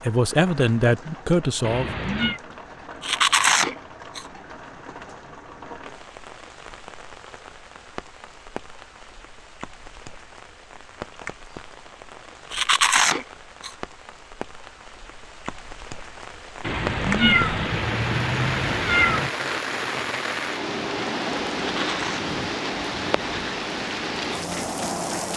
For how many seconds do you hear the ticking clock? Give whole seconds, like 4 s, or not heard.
not heard.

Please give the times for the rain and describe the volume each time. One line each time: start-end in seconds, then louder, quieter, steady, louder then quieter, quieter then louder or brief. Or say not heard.
0.0-25.3 louder.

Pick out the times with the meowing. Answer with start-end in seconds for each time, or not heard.
1.6-2.4, 16.6-19.3.